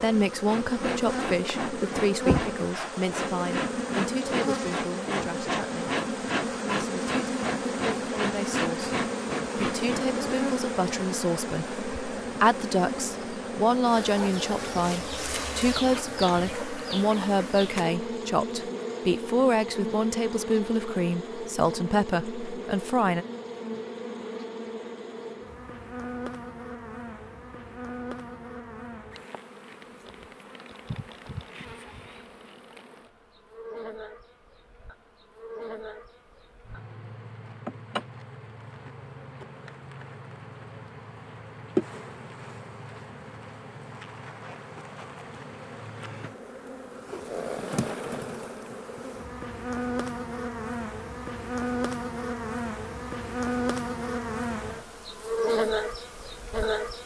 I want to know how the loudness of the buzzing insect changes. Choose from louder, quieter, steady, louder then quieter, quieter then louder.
quieter then louder.